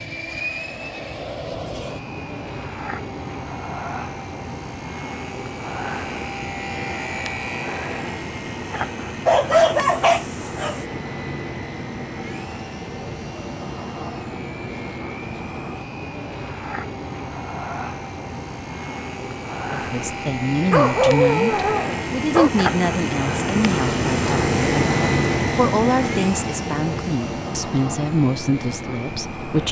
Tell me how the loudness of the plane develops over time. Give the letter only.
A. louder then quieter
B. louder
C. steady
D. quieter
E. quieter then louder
B.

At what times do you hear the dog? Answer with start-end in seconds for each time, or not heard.
9.2-10.8, 20.7-22.5.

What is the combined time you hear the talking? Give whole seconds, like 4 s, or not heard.
10 s.